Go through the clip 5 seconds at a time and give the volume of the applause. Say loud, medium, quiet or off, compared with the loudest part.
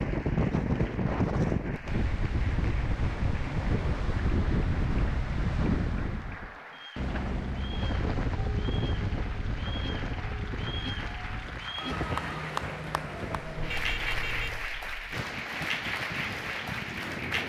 medium, medium, loud, loud.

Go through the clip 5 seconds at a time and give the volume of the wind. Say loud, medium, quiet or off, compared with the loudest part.
loud, loud, medium, medium.